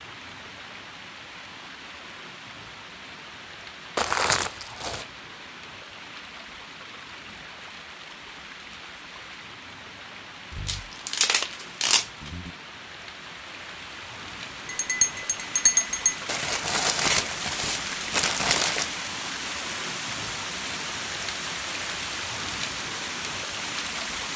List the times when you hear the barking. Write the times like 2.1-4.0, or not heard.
not heard.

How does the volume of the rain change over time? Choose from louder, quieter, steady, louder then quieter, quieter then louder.
louder.